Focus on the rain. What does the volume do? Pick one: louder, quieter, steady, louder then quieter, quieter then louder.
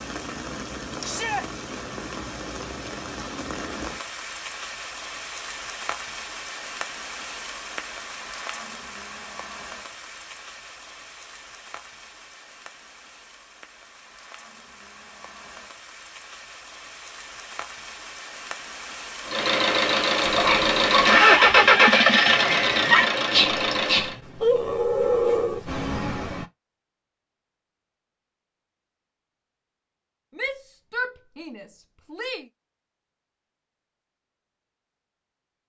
quieter then louder.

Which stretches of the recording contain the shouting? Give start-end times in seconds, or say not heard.
1.0-1.4, 30.4-32.5.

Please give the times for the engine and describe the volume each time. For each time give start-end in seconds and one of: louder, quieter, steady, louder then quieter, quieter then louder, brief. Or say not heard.
19.2-24.1 louder then quieter.